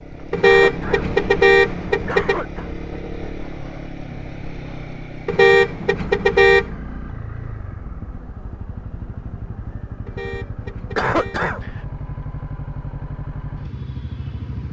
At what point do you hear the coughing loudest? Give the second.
11 s.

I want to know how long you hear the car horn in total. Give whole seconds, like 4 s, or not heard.
5 s.